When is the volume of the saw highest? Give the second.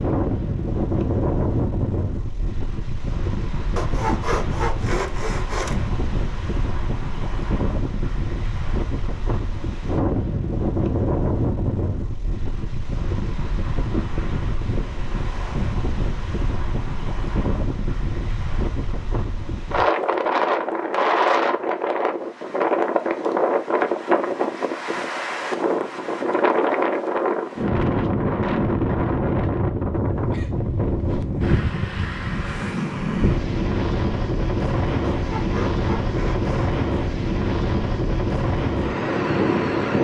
4 s.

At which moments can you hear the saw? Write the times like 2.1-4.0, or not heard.
3.8-5.8, 35.1-36.8.